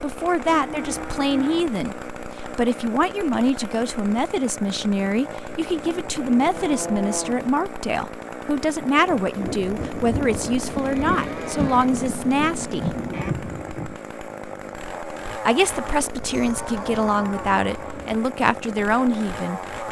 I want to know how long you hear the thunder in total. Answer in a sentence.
You can hear the thunder for 5 seconds altogether.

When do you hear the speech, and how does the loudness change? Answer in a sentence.
You can hear the speech from 0.0 to 12.8 s, at a steady volume; and from 15.4 to 19.6 s, at a steady volume.